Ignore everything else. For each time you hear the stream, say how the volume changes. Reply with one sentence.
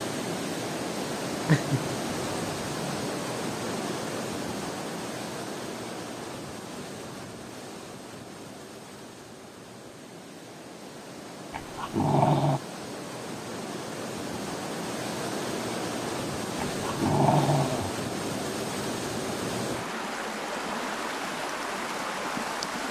You can hear the stream from 0.0 to 22.8 s, getting quieter then louder.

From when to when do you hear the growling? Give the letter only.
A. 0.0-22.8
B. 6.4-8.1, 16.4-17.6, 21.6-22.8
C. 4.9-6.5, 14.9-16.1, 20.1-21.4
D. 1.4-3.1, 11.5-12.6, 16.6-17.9
D.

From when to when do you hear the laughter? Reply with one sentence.
You can't hear the laughter here.